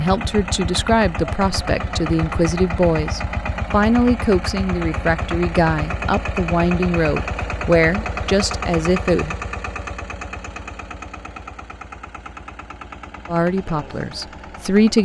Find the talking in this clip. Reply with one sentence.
The talking can be heard from 0.0 to 9.3 s and from 13.2 to 14.9 s.